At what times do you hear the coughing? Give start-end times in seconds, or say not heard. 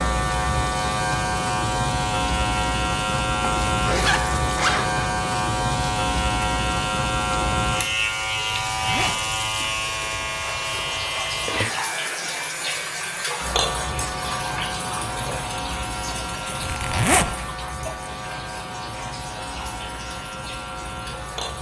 not heard.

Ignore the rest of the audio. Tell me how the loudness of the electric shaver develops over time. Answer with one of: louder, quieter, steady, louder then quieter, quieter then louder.
quieter.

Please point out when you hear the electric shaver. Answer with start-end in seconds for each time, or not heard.
0.0-21.5.